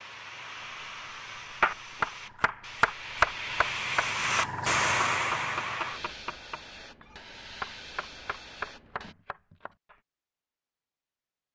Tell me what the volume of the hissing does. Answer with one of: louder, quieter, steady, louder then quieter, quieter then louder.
louder then quieter.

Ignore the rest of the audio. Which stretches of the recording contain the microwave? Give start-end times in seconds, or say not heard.
not heard.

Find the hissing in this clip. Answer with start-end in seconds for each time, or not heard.
0.0-9.2.